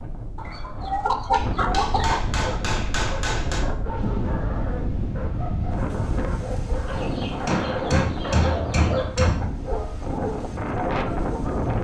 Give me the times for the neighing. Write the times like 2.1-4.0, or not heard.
not heard.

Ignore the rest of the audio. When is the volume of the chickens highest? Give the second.
1 s.